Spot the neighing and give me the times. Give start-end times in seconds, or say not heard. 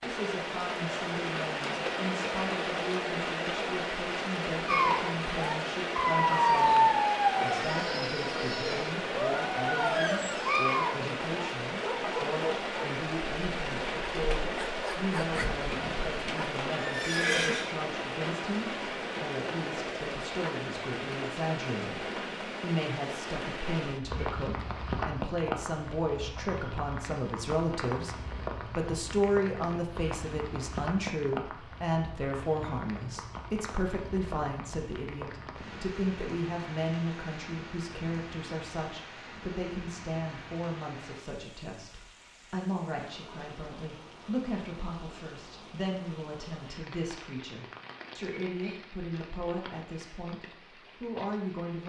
15.3-17.7.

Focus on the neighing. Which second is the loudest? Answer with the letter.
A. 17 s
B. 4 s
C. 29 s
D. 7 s
A.